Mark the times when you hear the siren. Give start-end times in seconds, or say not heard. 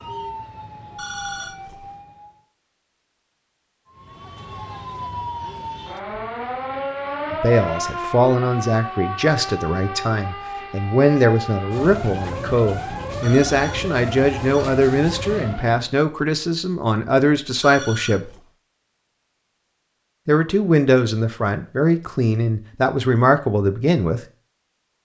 0.0-2.5, 3.9-15.9.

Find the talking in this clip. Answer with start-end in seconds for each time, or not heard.
7.3-18.3, 20.2-24.2.